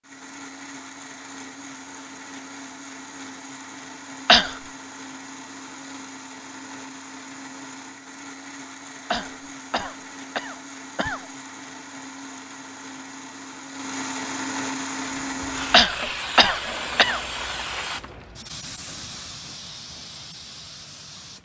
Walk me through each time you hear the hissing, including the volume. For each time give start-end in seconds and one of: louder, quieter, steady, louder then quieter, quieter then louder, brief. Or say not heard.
15.2-21.4 quieter.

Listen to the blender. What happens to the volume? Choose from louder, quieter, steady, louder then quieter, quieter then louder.
louder.